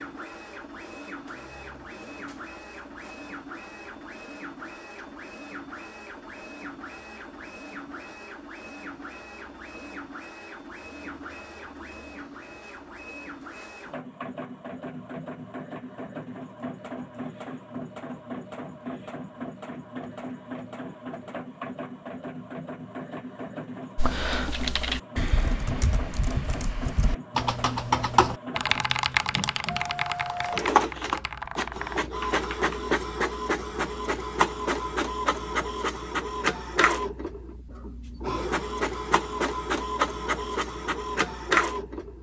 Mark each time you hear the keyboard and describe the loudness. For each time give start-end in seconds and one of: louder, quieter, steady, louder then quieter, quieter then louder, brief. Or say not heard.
23.9-32.8 louder then quieter.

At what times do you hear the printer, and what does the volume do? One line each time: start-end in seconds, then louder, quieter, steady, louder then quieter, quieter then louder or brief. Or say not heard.
0.0-42.1 louder.